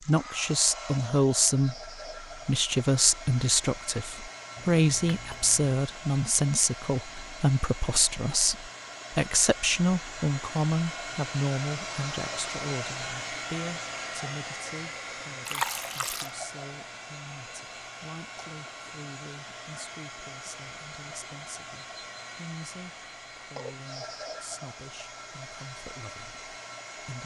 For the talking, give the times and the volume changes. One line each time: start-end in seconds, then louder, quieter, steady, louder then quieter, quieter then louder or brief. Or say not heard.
0.1-27.2 quieter.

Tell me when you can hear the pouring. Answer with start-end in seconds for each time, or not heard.
4.5-5.7, 15.4-16.3.